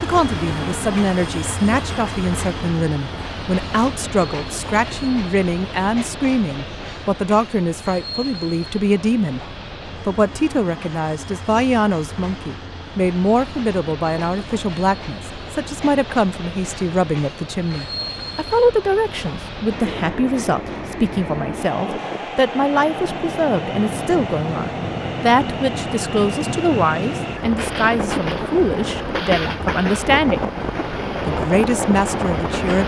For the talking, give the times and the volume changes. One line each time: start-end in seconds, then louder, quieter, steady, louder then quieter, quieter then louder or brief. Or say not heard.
0.0-30.5 steady
31.2-32.8 brief.